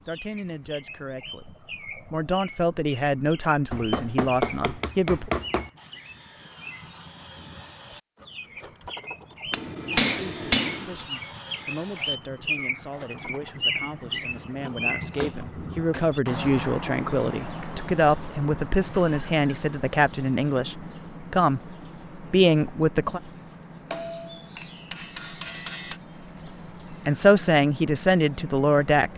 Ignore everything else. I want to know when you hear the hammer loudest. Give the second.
10 s.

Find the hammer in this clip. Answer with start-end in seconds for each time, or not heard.
3.7-5.7, 9.5-11.1, 14.7-16.1, 23.9-26.0.